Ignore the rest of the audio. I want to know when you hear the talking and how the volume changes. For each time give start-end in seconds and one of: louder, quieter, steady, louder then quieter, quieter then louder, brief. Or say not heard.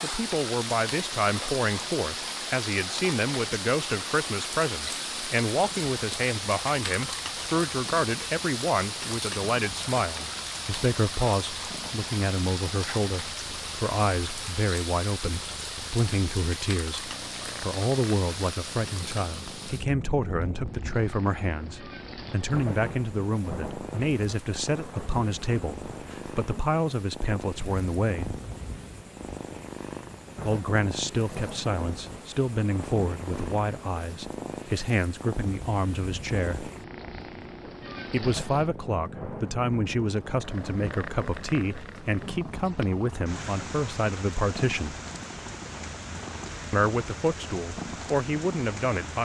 0.0-28.4 steady
30.4-36.7 steady
38.1-45.0 steady
46.7-49.2 brief.